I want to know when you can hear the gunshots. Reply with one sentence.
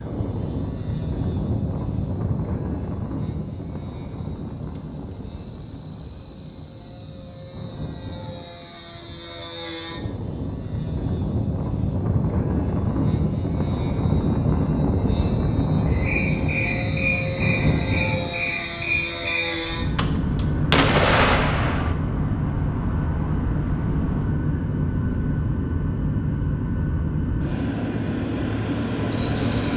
You can hear the gunshots from 19.9 to 21.9 s.